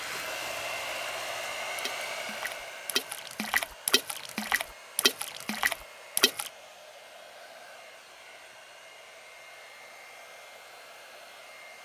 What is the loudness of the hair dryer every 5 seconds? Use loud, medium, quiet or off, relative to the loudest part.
loud, medium, medium.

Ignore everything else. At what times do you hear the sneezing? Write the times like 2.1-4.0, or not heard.
not heard.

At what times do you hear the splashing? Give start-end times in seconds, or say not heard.
0.0-6.5.